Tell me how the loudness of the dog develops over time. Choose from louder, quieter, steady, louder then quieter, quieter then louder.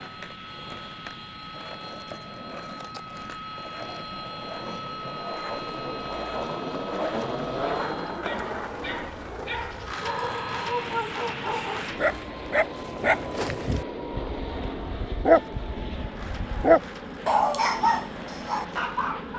louder.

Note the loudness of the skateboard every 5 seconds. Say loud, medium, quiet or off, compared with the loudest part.
medium, loud, medium, quiet.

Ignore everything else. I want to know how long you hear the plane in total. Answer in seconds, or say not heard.
18 s.